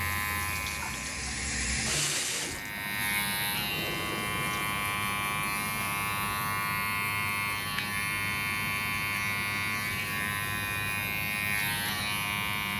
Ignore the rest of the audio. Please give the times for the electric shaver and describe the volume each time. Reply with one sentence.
You can hear the electric shaver from 0.0 to 12.7 s, getting louder.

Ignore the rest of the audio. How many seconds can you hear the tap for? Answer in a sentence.
The tap can be heard for 5 seconds in total.